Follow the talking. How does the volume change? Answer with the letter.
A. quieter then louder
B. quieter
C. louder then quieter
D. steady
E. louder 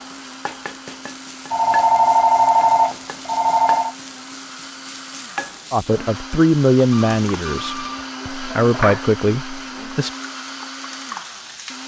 A.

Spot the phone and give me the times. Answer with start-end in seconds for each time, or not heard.
1.5-4.0, 6.9-8.1.